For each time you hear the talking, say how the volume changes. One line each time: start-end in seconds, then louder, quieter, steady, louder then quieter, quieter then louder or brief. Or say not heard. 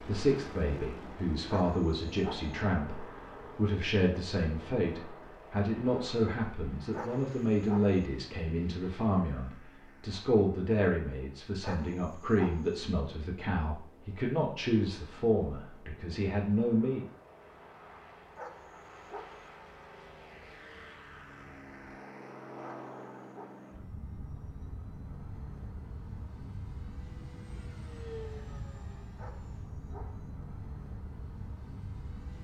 0.0-17.1 steady.